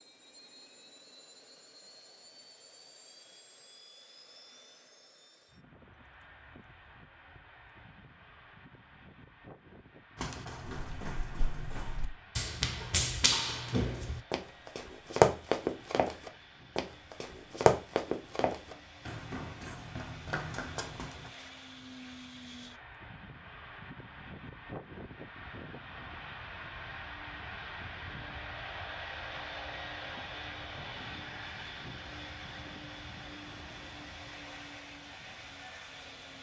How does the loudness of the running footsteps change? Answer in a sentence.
The loudness of the running footsteps goes up, then down.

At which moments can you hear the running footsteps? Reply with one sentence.
You can hear the running footsteps from 10.2 to 21.3 s.